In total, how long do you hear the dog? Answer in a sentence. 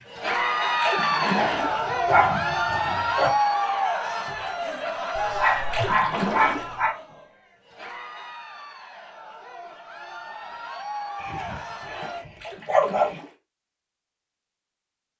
You can hear the dog for 6 seconds altogether.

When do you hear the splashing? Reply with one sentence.
The splashing can be heard from 0.8 to 1.8 s, from 5.7 to 6.7 s and from 12.4 to 13.3 s.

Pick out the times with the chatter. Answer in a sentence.
You can hear the chatter from 0.1 to 12.2 s.